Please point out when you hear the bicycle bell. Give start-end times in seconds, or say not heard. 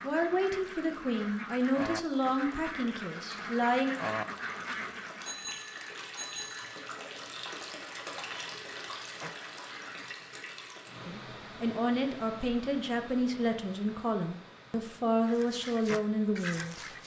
5.2-6.8.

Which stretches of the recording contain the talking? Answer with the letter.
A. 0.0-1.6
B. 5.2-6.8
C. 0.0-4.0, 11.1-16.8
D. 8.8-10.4
C.